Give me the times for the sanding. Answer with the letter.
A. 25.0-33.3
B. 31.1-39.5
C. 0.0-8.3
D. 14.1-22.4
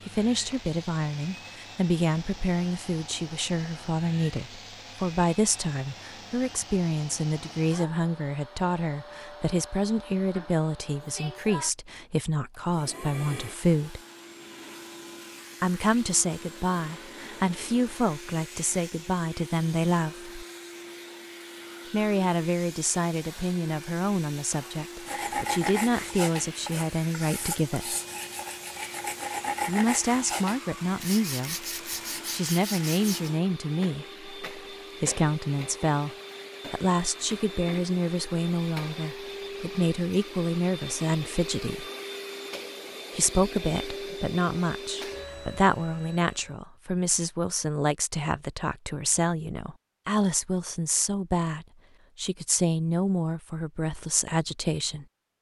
A.